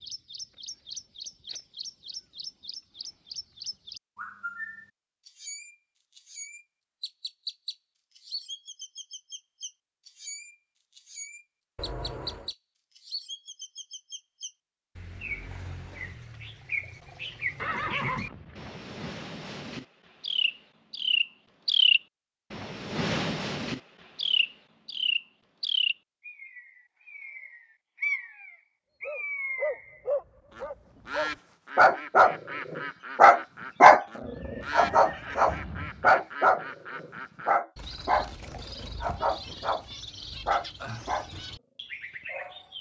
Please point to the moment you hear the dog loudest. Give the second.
34 s.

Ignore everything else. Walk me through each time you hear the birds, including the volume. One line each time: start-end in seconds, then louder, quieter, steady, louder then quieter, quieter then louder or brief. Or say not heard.
0.0-42.7 louder then quieter.